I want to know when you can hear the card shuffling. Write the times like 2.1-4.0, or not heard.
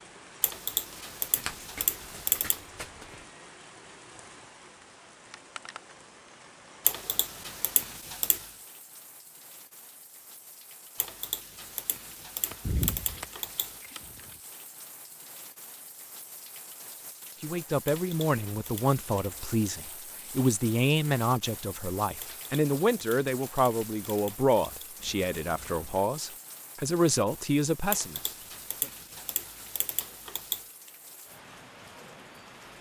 1.4-3.2, 12.4-14.3, 24.9-26.1.